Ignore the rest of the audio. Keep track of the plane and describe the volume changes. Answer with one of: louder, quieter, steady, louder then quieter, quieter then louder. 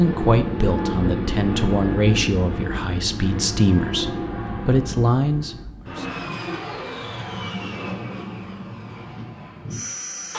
quieter.